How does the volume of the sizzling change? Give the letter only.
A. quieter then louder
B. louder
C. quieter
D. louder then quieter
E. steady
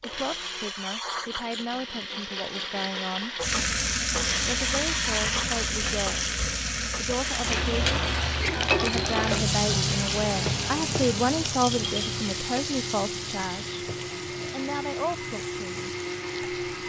C.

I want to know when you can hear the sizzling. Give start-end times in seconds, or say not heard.
3.4-16.8.